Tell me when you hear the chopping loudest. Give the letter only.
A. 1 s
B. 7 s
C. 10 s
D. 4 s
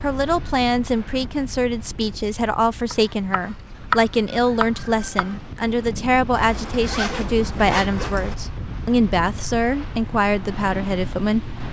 D.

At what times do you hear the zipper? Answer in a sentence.
The zipper can be heard from 6.3 to 8.3 s.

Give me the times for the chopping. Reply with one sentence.
You can hear the chopping from 2.9 to 5.3 s.